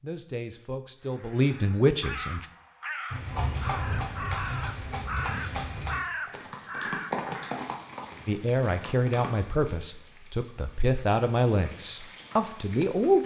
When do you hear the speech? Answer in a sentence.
You can hear the speech from 0.0 to 2.5 s and from 8.2 to 13.2 s.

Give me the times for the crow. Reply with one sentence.
You can hear the crow from 1.0 to 7.8 s.